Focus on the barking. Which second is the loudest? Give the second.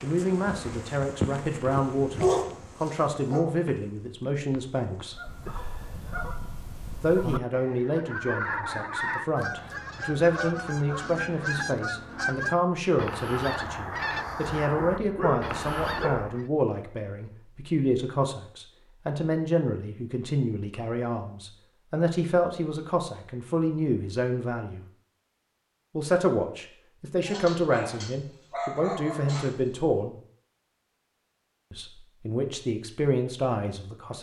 2 s.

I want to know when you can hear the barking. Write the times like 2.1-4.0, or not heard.
1.7-3.4, 14.8-16.2, 27.2-29.8.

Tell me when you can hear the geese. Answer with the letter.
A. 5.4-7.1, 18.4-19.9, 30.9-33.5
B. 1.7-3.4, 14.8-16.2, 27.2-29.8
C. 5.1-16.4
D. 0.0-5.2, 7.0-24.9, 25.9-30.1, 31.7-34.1
C.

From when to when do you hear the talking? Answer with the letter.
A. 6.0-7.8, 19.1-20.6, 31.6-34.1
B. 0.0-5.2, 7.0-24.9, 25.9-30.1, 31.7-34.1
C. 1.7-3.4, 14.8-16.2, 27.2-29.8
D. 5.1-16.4
B.